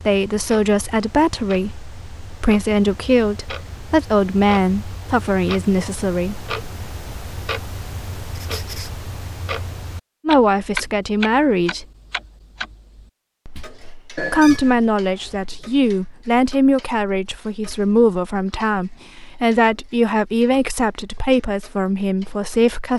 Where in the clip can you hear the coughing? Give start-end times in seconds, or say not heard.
not heard.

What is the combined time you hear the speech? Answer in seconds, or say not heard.
17 s.